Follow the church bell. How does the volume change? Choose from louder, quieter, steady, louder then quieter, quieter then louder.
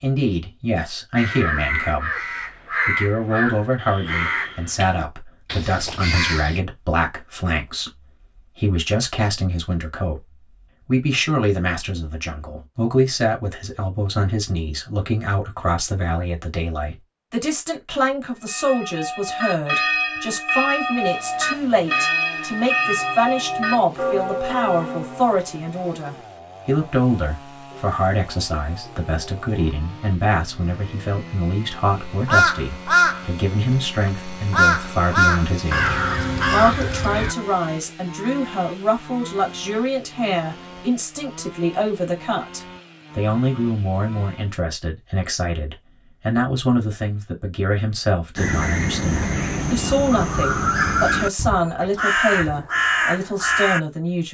steady.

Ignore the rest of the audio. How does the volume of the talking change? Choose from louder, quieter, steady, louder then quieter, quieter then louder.
steady.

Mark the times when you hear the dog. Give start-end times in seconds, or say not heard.
not heard.